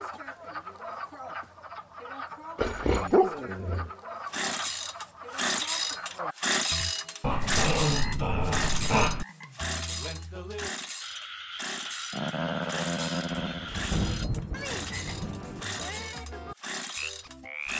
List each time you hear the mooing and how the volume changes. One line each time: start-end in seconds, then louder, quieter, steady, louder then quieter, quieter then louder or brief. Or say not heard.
not heard.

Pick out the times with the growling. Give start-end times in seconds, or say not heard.
2.5-3.9, 7.2-9.2, 12.1-13.8.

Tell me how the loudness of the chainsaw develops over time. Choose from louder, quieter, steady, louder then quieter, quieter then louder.
quieter.